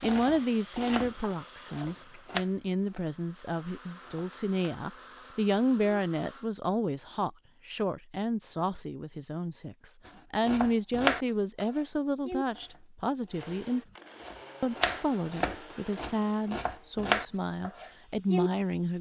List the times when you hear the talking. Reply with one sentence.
You can hear the talking from 0.0 to 13.8 s and from 14.6 to 18.9 s.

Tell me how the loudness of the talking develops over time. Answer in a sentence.
The volume of the talking stays about the same.